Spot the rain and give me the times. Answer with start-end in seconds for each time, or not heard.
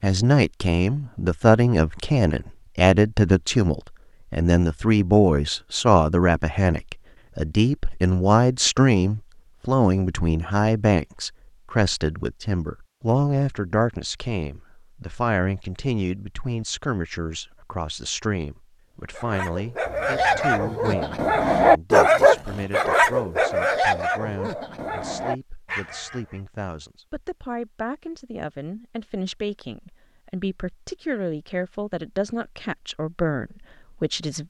not heard.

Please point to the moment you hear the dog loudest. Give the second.
22 s.